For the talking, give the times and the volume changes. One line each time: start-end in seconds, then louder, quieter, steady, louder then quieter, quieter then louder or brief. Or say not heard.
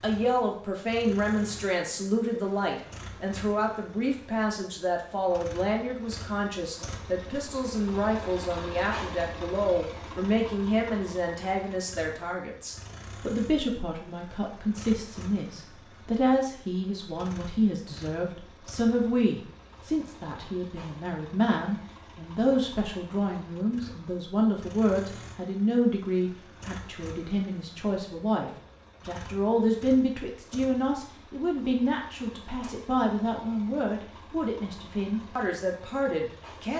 0.0-36.7 steady.